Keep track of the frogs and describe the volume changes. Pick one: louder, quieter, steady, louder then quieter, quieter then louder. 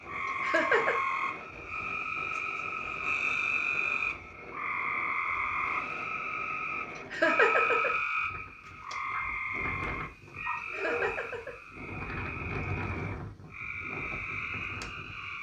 quieter.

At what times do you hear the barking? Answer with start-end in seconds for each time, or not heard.
9.1-11.2.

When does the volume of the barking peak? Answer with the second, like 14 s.
11 s.